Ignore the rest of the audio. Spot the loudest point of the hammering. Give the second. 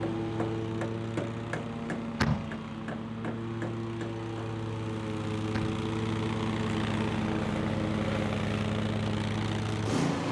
1 s.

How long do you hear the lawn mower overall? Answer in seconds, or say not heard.
10 s.